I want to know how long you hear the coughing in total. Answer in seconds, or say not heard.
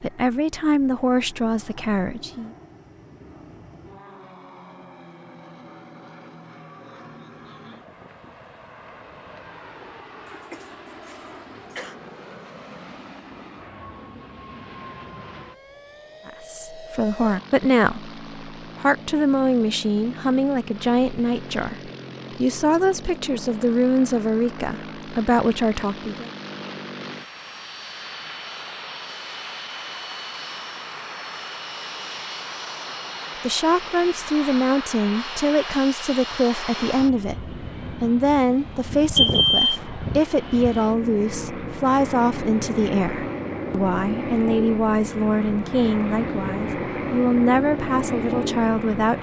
2 s.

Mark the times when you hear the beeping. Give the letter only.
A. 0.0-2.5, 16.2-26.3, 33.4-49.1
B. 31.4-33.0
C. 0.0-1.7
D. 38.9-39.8
D.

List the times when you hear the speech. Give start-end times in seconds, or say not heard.
0.0-2.5, 16.2-26.3, 33.4-49.1.